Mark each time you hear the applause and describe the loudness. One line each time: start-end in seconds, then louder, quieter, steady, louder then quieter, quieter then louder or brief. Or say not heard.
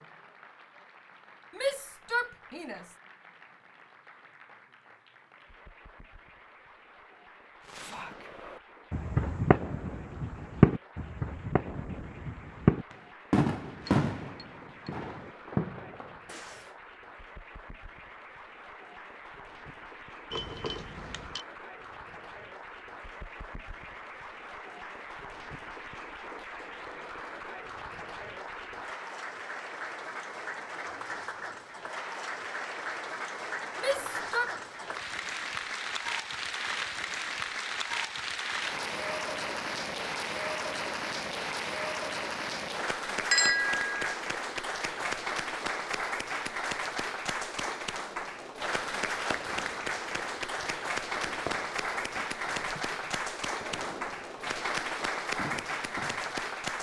0.0-56.7 louder.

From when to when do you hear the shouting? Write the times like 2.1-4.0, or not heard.
1.6-2.9, 33.8-34.5.